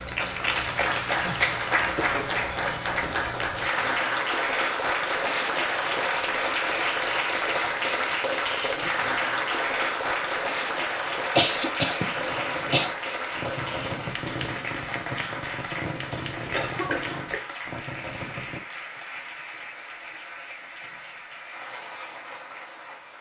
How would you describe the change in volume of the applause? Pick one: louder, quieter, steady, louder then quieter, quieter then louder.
quieter.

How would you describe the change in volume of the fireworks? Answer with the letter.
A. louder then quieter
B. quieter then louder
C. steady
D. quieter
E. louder
C.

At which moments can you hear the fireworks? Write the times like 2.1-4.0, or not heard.
12.1-18.6.